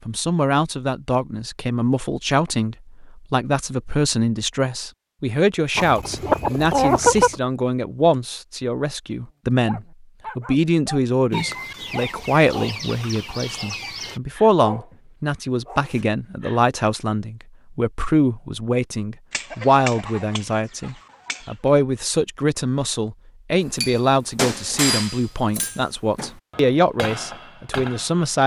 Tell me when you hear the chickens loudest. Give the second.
7 s.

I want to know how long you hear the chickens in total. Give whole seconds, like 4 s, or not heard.
7 s.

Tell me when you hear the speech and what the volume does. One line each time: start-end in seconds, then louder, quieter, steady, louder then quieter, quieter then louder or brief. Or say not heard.
0.1-28.4 steady.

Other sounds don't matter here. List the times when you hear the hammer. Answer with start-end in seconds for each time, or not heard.
23.7-28.4.